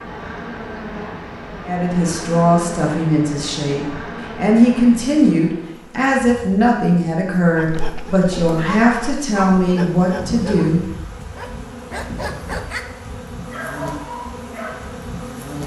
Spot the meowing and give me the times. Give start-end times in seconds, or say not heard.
not heard.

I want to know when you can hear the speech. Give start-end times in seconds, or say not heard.
1.6-10.8.